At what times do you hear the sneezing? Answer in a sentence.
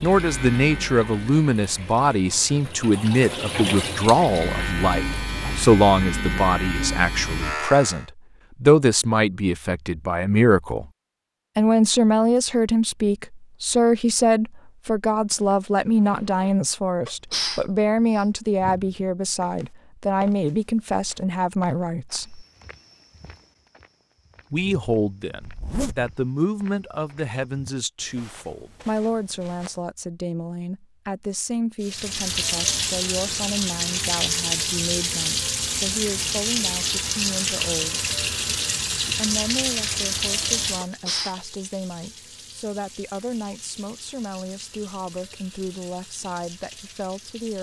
You can hear the sneezing from 17.1 to 19.1 s and from 40.8 to 41.4 s.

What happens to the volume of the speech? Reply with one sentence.
The volume of the speech goes down.